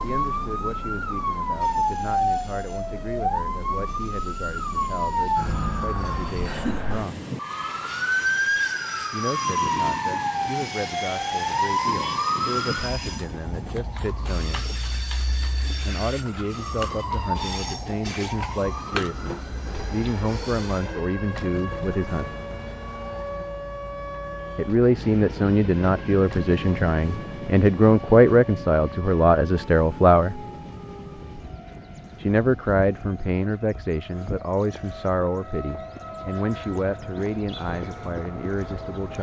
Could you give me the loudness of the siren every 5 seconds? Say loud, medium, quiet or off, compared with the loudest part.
loud, loud, loud, medium, medium, quiet, quiet, medium.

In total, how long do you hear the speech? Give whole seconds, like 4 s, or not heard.
32 s.